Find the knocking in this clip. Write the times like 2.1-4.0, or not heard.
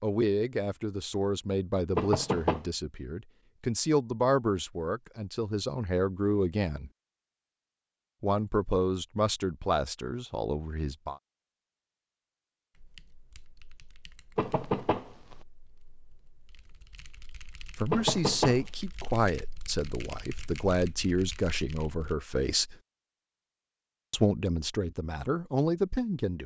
1.9-2.6, 14.3-15.3, 17.9-18.6.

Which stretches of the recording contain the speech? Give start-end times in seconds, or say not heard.
0.0-6.9, 8.2-11.2, 17.8-22.8, 24.1-26.4.